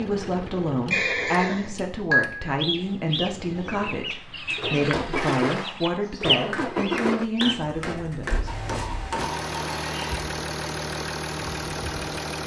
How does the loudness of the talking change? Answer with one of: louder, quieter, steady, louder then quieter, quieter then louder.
steady.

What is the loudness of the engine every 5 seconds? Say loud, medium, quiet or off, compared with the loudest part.
medium, loud, loud.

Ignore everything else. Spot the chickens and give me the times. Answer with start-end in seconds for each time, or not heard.
2.5-7.5.